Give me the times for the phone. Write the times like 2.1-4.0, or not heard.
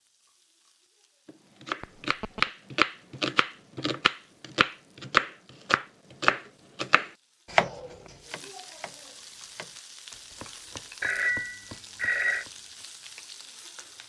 1.8-2.4, 11.0-12.4.